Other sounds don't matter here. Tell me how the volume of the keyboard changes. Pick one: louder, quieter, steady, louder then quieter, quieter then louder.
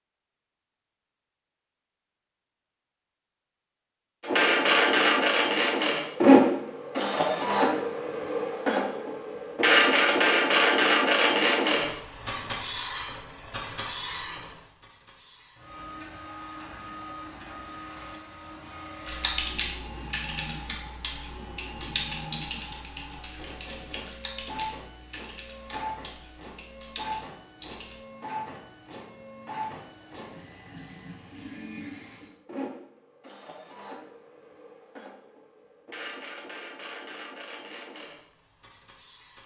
quieter.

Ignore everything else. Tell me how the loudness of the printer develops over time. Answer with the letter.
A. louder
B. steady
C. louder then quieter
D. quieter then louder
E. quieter
E.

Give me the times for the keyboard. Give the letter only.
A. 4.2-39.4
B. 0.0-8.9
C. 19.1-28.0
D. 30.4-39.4
C.